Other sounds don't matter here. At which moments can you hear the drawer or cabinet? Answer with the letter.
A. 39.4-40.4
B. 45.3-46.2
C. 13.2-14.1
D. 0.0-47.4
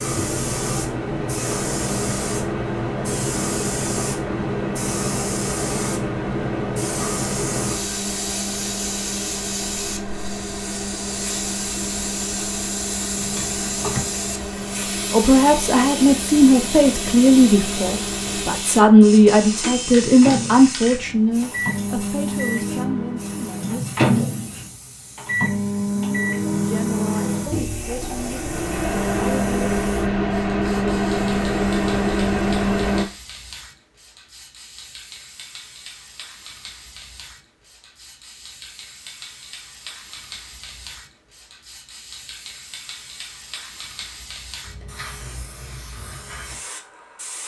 C.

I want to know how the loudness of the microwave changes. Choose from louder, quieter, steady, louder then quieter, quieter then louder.
louder.